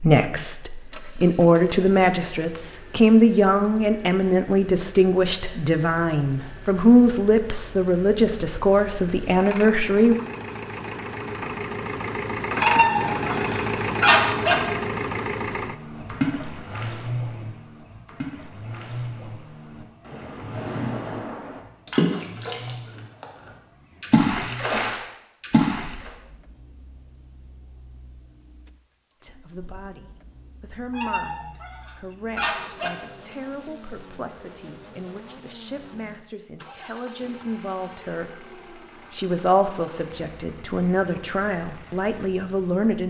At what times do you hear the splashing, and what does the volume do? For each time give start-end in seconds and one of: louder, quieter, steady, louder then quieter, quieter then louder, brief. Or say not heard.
15.6-23.2 quieter then louder
24.0-26.1 brief.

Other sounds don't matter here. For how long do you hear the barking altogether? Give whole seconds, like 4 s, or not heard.
4 s.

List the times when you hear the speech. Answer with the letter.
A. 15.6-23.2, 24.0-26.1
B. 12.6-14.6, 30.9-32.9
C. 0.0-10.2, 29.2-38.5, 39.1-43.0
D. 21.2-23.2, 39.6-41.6
C.